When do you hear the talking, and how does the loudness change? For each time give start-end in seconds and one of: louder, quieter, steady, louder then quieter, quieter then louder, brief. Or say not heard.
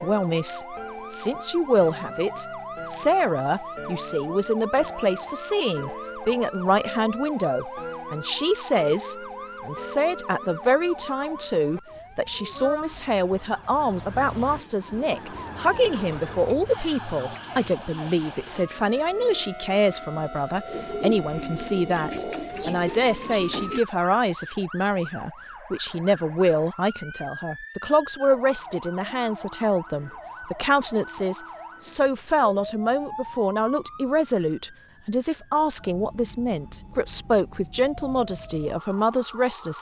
0.0-39.7 steady.